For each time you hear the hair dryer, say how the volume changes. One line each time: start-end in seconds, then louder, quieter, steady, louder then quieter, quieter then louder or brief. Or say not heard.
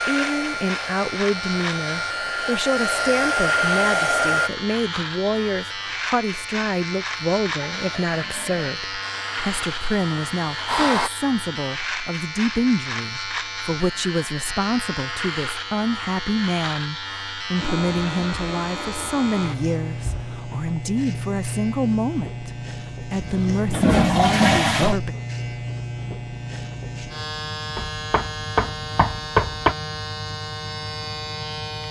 0.0-4.5 louder
9.0-11.1 brief.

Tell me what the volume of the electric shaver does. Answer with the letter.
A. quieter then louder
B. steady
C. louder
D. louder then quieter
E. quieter
B.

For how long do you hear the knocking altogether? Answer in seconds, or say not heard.
2 s.